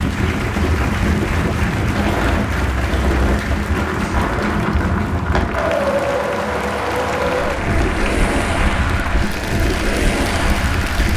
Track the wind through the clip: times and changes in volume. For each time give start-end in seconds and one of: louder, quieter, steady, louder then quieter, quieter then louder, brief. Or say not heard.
0.0-11.1 steady.